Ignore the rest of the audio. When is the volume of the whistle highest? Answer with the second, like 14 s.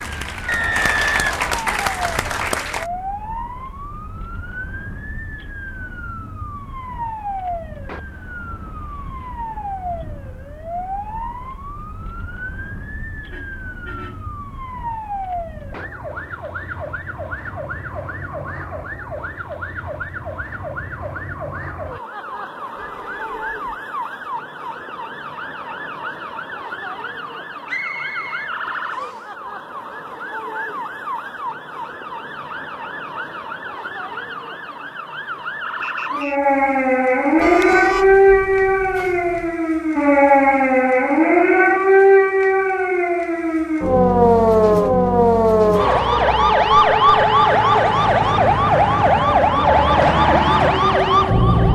1 s.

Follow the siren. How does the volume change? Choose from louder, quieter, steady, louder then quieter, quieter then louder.
louder.